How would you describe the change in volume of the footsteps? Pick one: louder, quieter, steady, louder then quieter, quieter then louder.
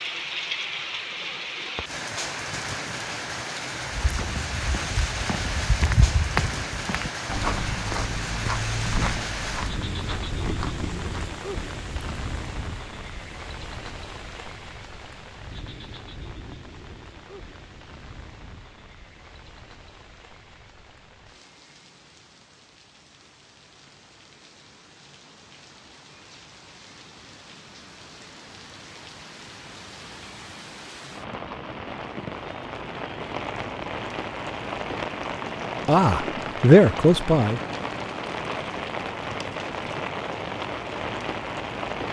louder then quieter.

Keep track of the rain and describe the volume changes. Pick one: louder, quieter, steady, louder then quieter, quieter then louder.
quieter then louder.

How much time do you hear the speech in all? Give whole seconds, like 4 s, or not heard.
2 s.